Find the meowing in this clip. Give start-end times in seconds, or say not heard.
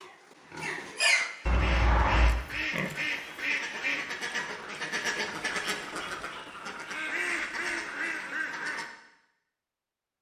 1.4-2.3.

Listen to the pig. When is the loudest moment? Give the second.
1 s.